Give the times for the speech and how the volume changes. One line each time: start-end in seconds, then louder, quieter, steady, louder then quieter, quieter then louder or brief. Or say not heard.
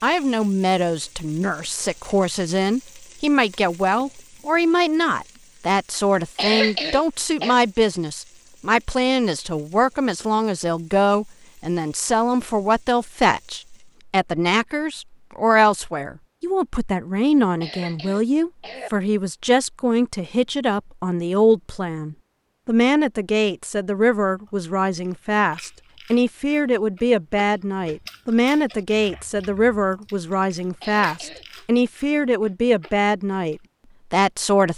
0.0-34.7 steady.